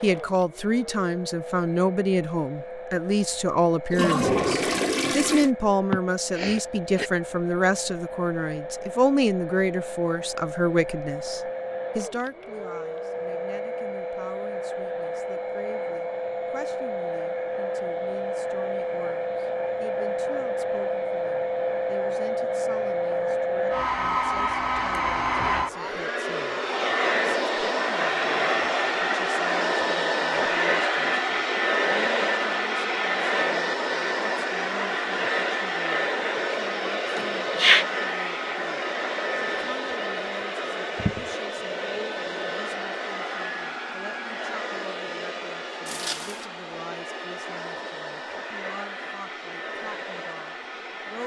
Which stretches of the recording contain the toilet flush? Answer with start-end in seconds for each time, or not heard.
3.9-5.5, 45.9-46.5.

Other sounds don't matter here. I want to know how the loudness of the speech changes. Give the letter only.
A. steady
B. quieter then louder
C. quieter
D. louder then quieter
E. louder
C.